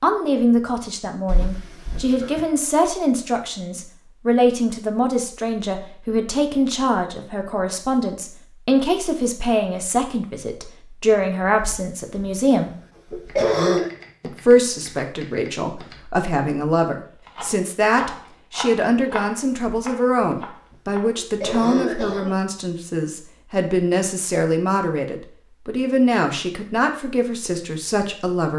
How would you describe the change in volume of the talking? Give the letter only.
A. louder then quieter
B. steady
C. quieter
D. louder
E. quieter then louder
B.